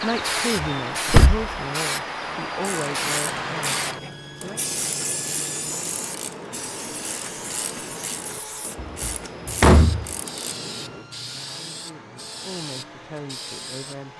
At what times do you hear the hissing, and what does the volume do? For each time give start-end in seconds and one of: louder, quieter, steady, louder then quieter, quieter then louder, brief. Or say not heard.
0.0-14.1 quieter.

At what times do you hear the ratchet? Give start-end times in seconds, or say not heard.
2.5-11.1.